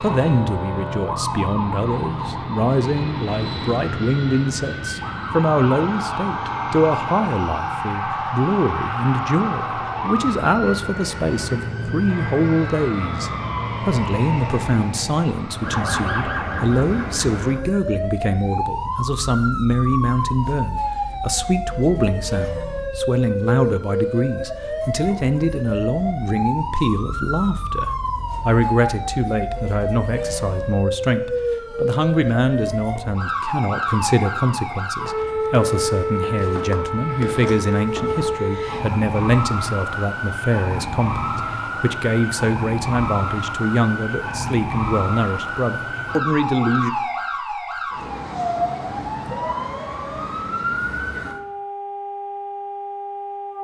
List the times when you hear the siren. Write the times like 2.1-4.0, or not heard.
0.0-53.6.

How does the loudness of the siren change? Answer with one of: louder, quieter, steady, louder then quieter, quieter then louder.
steady.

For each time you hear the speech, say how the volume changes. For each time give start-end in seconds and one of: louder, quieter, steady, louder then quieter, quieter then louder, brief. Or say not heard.
0.0-46.9 steady.